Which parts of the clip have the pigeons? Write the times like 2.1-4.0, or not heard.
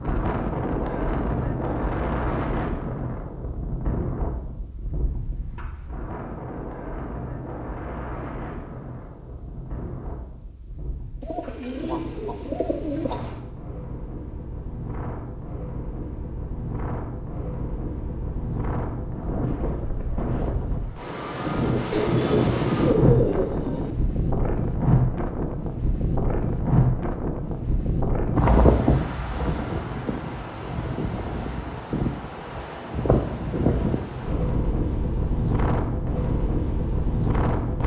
11.2-13.4, 21.9-23.9.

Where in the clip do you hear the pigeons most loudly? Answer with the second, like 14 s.
23 s.